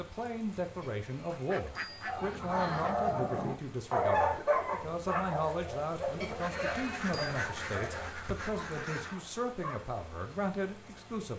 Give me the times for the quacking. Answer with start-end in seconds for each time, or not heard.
1.3-3.1, 6.3-9.2.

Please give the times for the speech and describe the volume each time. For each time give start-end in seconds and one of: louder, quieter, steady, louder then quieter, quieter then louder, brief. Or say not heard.
0.0-11.3 steady.